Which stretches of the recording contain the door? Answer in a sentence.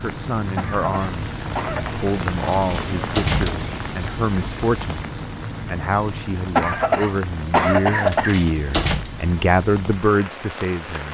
You can hear the door from 2.5 to 3.7 s and from 8.0 to 9.1 s.